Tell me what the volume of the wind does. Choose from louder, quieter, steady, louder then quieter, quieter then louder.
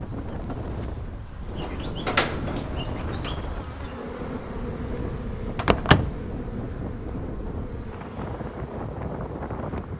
steady.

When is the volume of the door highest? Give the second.
6 s.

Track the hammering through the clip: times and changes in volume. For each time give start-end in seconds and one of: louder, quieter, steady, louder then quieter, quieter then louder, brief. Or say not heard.
not heard.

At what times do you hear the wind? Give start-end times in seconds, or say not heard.
0.0-9.9.